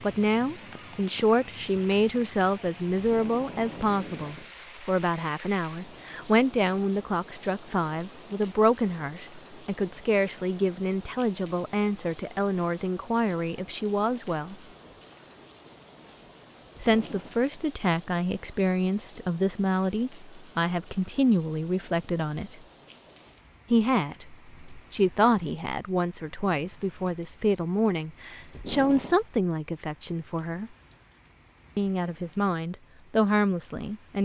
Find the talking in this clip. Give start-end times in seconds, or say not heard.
0.0-14.6, 16.8-22.6, 23.7-30.7, 31.8-34.2.